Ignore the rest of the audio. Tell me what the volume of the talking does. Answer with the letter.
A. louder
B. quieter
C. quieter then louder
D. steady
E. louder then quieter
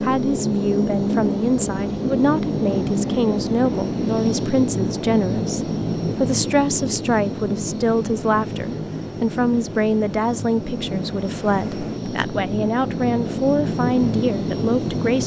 D.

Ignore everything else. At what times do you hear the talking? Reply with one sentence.
You can hear the talking from 0.0 to 15.2 s.